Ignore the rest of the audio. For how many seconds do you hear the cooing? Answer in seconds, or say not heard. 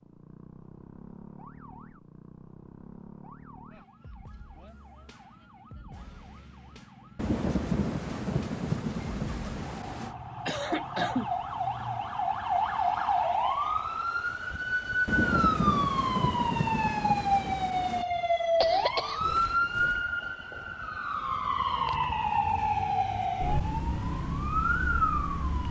not heard.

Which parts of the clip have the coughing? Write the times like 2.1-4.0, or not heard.
10.4-11.2, 18.6-20.1.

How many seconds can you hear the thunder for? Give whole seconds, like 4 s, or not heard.
6 s.